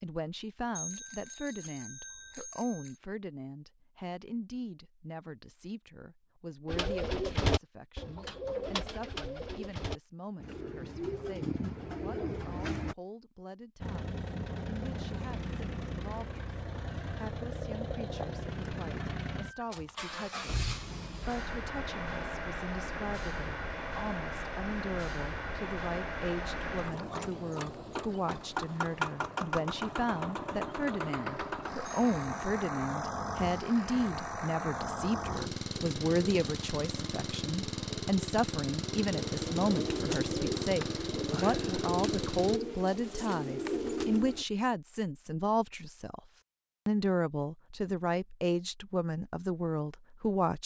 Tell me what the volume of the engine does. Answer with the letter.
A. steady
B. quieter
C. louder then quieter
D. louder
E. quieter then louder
A.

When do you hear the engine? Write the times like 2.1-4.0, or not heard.
13.8-42.6.